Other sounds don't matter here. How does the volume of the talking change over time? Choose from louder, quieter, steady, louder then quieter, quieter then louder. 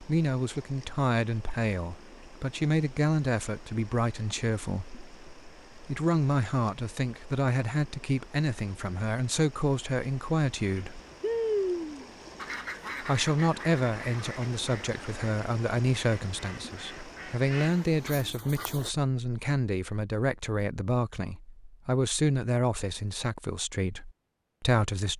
steady.